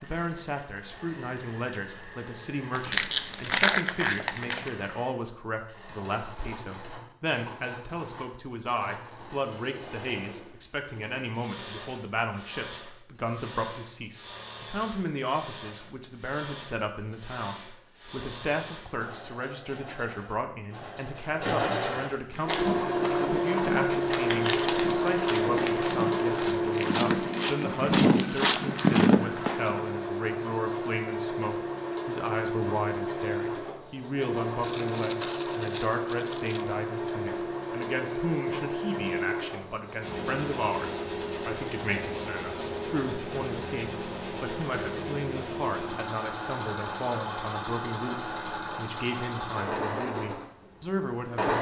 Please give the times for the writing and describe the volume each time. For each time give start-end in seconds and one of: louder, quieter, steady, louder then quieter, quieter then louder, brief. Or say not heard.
not heard.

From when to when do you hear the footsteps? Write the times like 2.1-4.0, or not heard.
22.3-29.8.